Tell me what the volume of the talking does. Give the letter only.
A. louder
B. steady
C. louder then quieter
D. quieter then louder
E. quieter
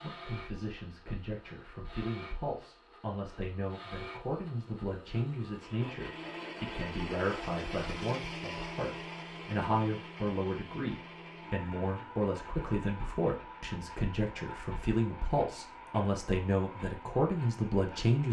A.